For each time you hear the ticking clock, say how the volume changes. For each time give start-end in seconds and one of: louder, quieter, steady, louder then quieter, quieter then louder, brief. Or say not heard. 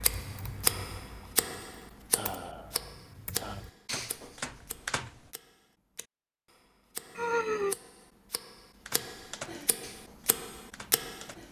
0.0-11.3 quieter then louder.